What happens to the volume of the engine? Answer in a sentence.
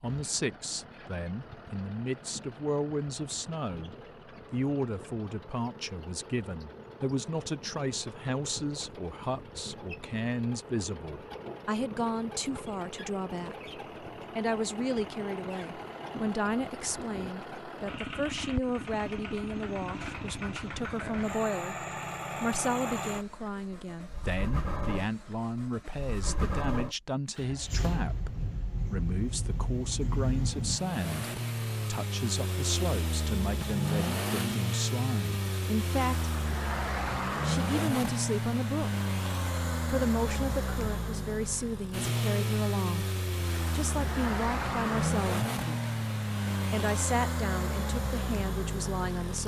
The volume of the engine goes up.